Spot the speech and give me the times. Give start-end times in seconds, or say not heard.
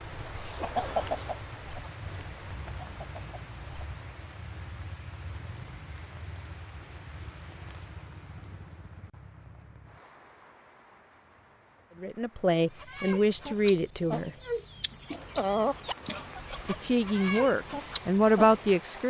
12.0-14.3, 16.6-19.0.